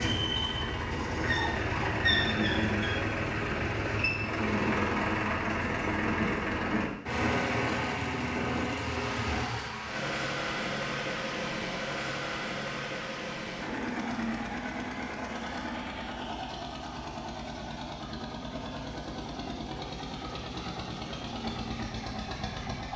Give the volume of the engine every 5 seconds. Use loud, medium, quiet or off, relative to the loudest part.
loud, loud, loud, medium, medium.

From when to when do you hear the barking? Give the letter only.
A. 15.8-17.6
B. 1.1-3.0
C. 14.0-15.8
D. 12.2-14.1
B.